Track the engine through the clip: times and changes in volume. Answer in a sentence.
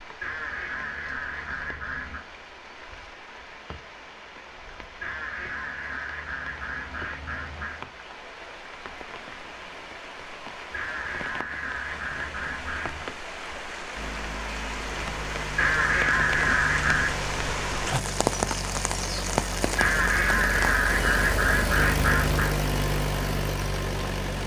The engine can be heard from 13.9 to 24.4 s, getting louder.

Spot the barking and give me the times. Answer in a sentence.
You can't hear the barking here.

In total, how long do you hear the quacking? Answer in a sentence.
The quacking can be heard for 12 seconds in total.